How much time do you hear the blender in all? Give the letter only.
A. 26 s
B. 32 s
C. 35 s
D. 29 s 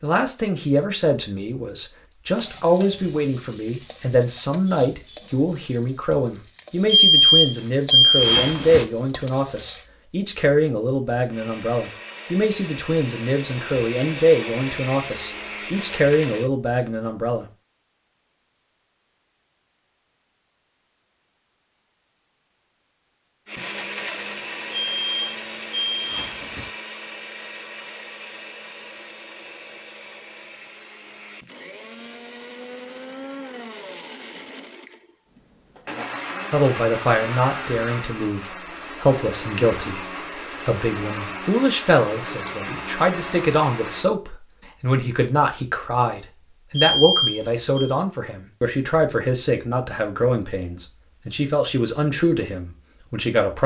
A.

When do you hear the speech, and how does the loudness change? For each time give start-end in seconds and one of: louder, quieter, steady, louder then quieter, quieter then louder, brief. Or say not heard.
0.0-17.4 steady
36.5-53.6 steady.